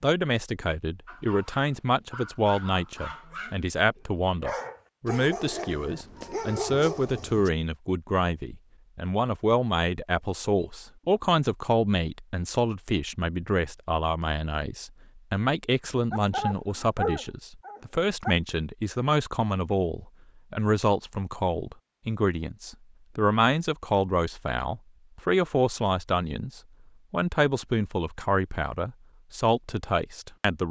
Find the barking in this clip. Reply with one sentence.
The barking can be heard from 1.1 to 7.5 s and from 16.1 to 18.4 s.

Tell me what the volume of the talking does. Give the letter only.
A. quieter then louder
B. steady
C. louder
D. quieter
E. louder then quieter
B.